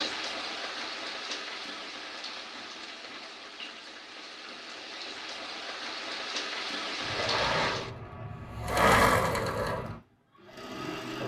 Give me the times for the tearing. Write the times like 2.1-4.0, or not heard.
not heard.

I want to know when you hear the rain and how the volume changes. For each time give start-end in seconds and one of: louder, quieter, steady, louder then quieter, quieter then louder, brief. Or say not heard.
0.0-7.9 quieter then louder.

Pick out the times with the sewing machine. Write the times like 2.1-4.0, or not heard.
7.0-11.2.